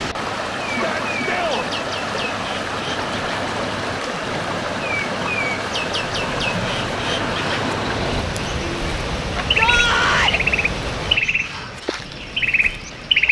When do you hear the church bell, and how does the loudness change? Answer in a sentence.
You can't hear the church bell here.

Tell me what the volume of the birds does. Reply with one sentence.
The loudness of the birds goes up.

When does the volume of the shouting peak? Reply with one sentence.
The loudest moment of the shouting is at 10 seconds.